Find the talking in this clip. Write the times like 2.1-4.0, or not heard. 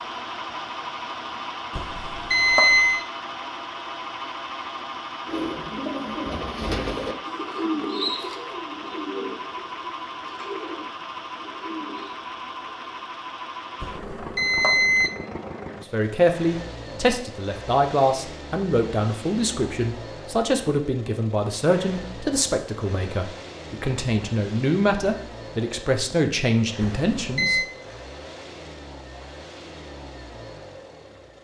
15.8-27.6.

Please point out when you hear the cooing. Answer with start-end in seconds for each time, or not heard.
5.2-12.1.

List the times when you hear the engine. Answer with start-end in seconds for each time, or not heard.
0.0-31.3.